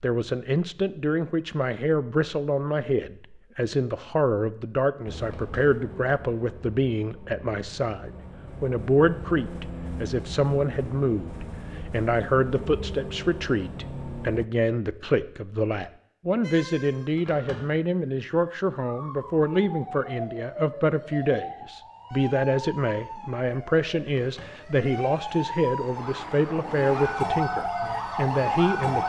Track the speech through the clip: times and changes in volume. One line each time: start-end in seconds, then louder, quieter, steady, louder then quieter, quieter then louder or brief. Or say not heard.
0.0-29.0 steady.